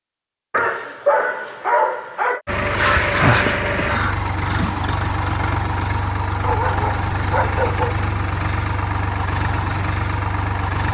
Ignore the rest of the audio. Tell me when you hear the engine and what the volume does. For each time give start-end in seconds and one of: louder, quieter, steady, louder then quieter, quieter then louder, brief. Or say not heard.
2.5-10.9 steady.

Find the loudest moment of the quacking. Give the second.
3 s.